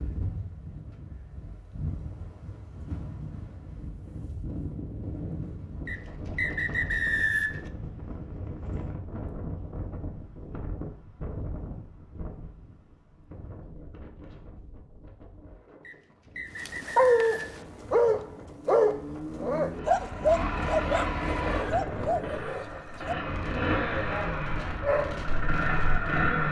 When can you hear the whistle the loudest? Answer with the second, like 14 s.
7 s.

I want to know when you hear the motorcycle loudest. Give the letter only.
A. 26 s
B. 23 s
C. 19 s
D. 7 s
A.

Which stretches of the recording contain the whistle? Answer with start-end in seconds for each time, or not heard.
5.8-7.6, 15.8-17.6.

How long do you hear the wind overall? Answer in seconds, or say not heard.
26 s.